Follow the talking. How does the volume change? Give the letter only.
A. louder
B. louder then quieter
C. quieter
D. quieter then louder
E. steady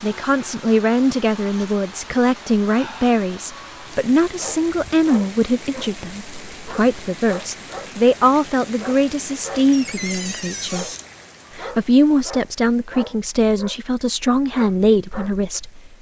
E.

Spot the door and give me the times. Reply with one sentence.
You can hear the door from 9.7 to 11.1 s.